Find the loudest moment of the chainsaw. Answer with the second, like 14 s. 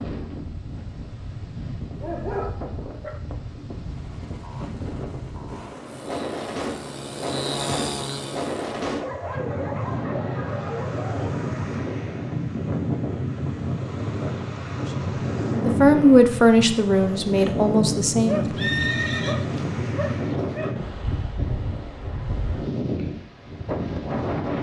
8 s.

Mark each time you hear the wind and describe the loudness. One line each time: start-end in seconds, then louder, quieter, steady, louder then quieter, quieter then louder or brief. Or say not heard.
0.0-24.5 louder.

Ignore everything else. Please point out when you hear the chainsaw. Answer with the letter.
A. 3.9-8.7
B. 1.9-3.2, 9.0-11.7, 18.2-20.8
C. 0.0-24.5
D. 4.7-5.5
A.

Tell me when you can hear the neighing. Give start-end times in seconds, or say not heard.
18.6-19.4.